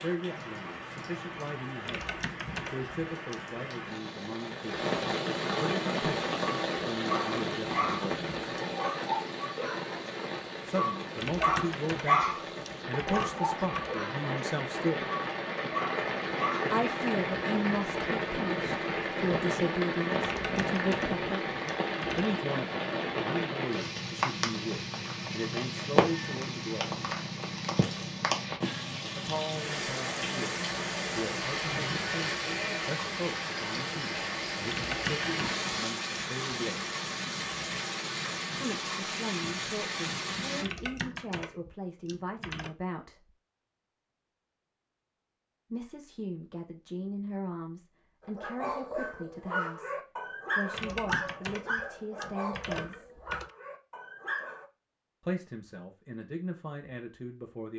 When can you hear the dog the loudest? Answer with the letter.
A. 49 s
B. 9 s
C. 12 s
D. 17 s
C.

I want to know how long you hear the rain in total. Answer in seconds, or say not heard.
41 s.